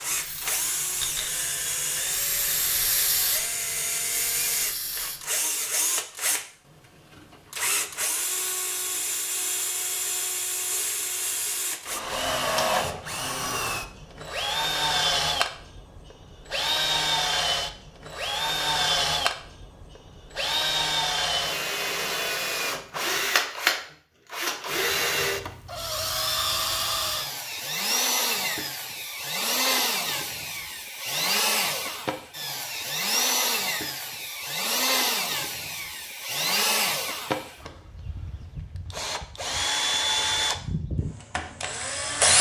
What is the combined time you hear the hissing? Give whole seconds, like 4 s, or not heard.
5 s.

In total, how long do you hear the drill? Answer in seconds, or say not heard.
42 s.